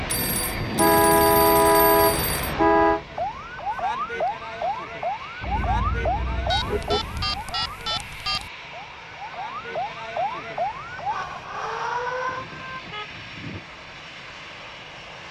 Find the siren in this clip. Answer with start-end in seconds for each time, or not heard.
3.0-12.4.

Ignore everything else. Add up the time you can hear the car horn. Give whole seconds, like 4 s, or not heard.
6 s.